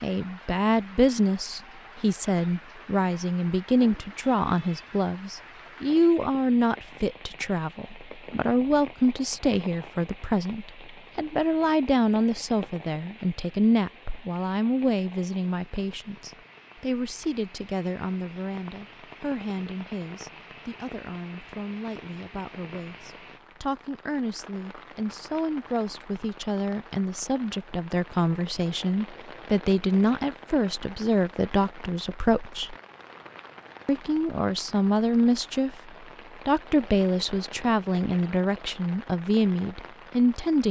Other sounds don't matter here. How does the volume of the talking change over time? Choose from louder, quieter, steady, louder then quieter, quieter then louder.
quieter then louder.